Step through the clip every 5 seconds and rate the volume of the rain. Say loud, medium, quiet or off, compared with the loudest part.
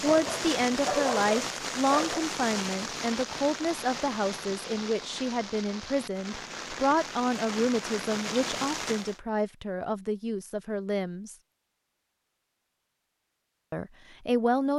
loud, loud, off.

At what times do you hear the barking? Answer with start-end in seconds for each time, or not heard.
0.0-2.2.